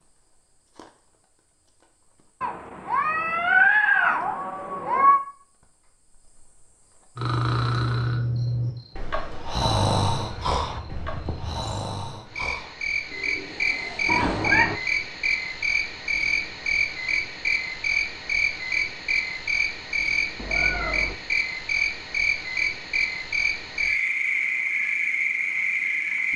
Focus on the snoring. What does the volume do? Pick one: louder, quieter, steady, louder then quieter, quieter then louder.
quieter.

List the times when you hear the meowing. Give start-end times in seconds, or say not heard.
2.4-5.2, 14.1-14.8, 20.4-21.1.